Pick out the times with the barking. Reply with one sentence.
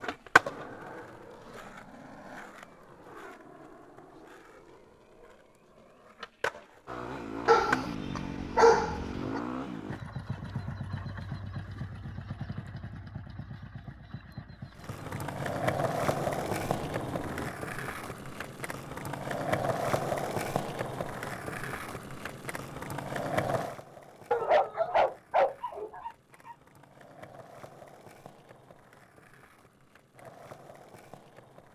The barking can be heard from 7.5 to 9.4 s and from 24.3 to 26.6 s.